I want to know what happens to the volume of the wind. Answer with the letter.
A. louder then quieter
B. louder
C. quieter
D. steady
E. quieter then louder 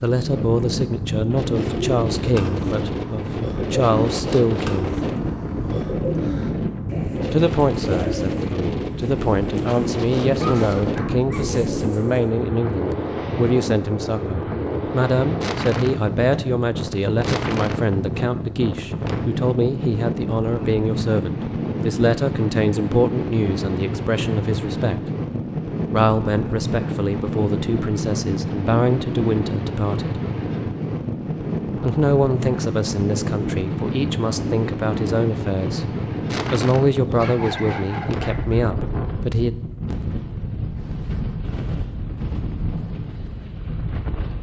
D.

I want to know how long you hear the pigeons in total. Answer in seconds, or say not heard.
11 s.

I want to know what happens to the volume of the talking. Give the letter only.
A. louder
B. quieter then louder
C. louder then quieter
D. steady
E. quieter
D.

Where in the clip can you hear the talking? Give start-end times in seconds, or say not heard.
0.0-5.0, 7.3-25.0, 25.9-30.2, 31.8-39.5.